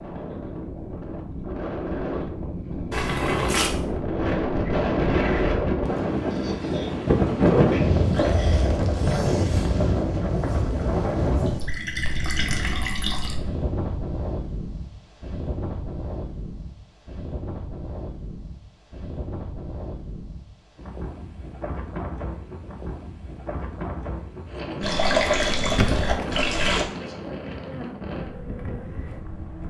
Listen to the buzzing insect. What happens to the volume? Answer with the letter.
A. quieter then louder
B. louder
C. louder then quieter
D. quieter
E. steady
D.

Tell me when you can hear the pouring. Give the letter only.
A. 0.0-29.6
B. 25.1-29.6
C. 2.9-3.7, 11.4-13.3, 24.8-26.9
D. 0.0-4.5
C.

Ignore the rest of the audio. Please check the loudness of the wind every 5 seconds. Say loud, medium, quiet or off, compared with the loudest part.
medium, loud, medium, quiet, quiet, quiet.